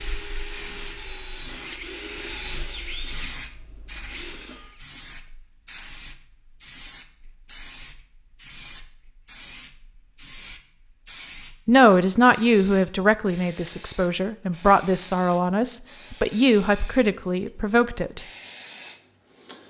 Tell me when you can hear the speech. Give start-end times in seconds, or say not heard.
11.7-18.2.